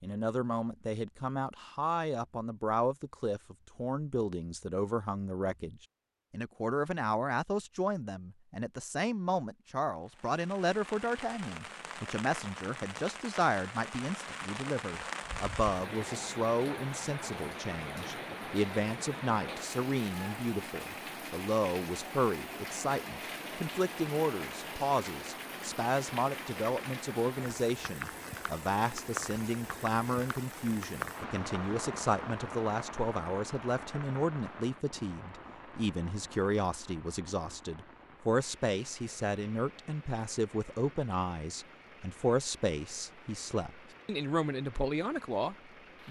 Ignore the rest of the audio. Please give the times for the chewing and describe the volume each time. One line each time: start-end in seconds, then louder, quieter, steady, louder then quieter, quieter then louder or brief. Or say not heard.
not heard.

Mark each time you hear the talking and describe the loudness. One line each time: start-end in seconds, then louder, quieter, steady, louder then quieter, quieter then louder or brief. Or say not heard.
0.0-46.0 steady.